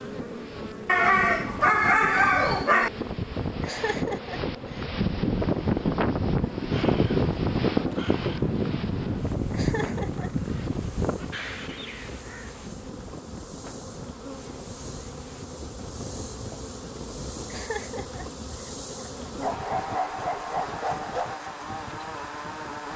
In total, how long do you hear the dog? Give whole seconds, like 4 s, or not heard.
4 s.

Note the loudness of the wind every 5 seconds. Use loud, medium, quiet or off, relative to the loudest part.
medium, loud, quiet, quiet, quiet.